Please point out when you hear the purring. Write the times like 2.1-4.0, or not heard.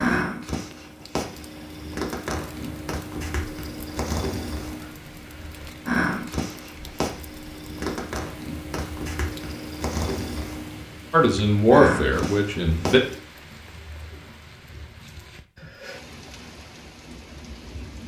0.0-13.2.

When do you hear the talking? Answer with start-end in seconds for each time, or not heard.
11.1-13.0.